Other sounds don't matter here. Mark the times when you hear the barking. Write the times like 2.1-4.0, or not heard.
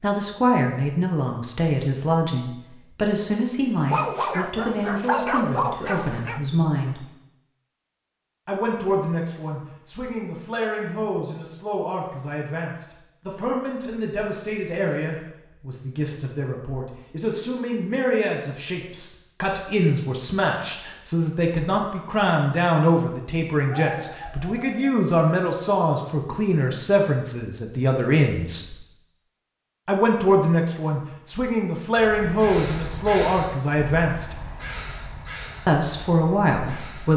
3.9-6.4, 23.6-25.0.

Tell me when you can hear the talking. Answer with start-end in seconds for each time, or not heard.
0.0-7.0, 8.4-28.8, 29.9-34.4, 35.6-37.1.